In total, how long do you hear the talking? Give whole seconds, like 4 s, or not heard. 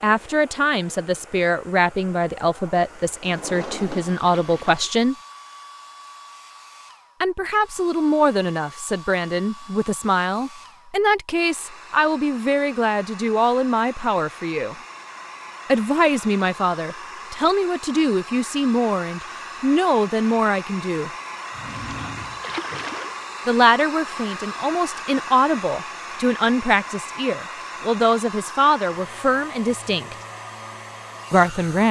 25 s.